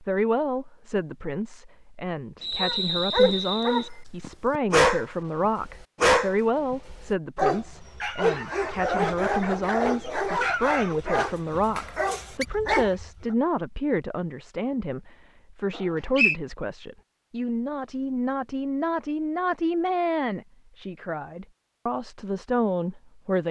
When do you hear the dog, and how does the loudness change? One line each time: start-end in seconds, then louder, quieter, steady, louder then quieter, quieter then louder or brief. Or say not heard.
2.5-13.1 quieter.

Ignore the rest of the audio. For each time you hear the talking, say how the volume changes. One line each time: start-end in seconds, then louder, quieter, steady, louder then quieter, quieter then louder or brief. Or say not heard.
0.0-23.4 steady.